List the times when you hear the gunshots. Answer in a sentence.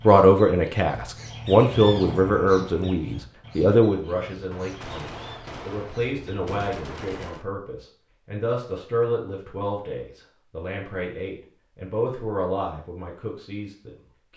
You can hear the gunshots from 4.5 to 7.5 s.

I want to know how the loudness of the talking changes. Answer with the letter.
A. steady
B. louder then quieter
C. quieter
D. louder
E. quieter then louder
C.